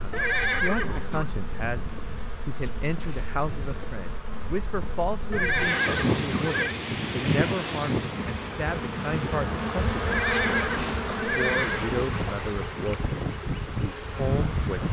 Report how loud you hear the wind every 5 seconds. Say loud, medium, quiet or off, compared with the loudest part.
quiet, loud, loud.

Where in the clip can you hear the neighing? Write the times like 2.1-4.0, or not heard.
0.1-1.3, 5.3-6.8, 10.1-11.8.